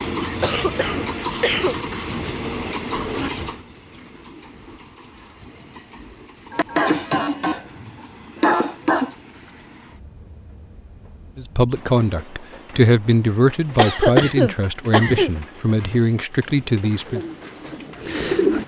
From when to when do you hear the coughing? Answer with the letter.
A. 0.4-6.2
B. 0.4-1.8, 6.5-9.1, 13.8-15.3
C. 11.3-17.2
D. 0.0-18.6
B.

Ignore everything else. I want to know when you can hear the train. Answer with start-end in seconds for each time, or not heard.
0.0-18.6.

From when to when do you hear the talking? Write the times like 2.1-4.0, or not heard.
11.3-17.2.